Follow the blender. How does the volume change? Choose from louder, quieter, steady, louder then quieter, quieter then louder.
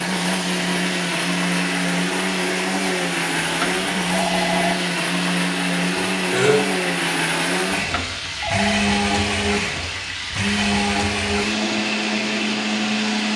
steady.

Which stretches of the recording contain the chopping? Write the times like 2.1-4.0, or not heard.
not heard.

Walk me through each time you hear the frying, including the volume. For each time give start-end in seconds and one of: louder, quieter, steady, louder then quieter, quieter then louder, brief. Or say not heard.
0.0-13.3 steady.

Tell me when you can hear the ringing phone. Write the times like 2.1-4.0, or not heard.
3.4-4.8, 7.8-8.8.